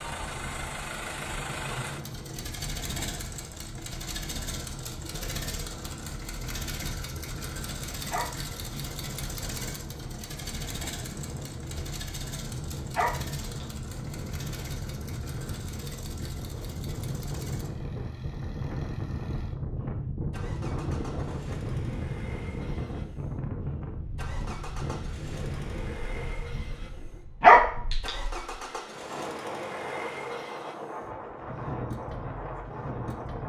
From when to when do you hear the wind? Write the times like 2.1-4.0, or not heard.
0.0-33.4.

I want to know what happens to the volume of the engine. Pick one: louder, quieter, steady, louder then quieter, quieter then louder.
quieter then louder.